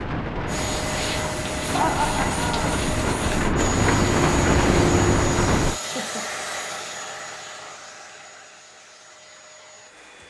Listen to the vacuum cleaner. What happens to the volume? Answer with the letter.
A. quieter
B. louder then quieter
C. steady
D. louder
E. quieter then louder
A.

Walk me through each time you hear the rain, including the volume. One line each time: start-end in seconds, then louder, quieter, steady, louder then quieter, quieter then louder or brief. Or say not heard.
0.0-5.8 louder.